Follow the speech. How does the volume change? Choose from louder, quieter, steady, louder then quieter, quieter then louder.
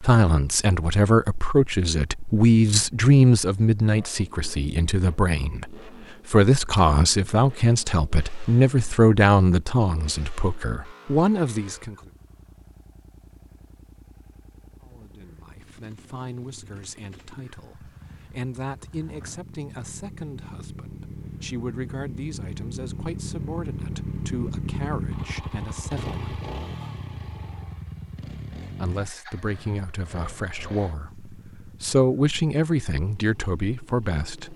quieter then louder.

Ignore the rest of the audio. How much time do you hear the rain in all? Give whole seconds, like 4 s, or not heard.
not heard.